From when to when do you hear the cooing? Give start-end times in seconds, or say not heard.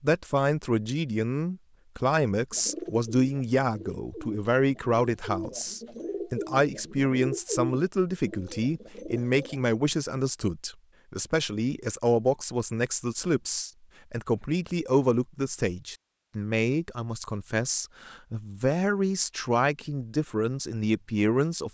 2.5-9.7.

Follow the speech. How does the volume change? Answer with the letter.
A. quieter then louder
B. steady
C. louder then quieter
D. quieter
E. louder
B.